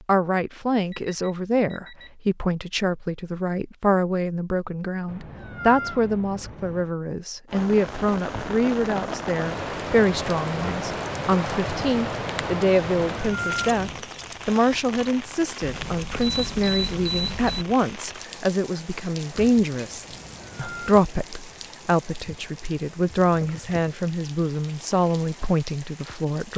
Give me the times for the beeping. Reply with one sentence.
The beeping can be heard from 0.9 to 2.2 s and from 15.6 to 17.6 s.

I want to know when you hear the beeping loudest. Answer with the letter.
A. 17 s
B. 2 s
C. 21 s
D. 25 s
A.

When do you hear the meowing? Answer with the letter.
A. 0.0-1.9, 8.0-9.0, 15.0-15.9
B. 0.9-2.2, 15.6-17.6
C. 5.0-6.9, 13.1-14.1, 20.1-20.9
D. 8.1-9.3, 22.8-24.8
C.